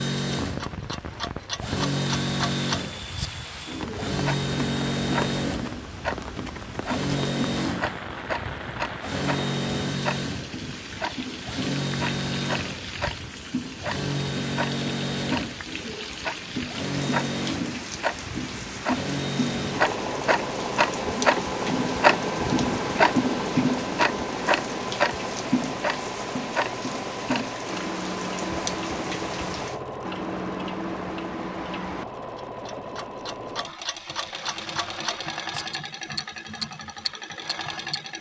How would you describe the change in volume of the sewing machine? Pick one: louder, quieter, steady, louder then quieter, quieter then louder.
quieter.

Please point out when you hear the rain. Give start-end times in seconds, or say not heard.
0.2-29.8.